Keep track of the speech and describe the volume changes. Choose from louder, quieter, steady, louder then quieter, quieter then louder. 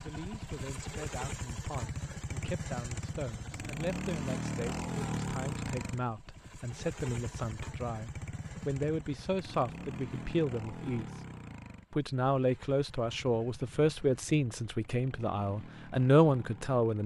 louder.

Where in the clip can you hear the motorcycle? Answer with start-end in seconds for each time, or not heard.
0.0-17.0.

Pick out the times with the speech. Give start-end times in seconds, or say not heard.
0.0-11.2, 11.9-17.0.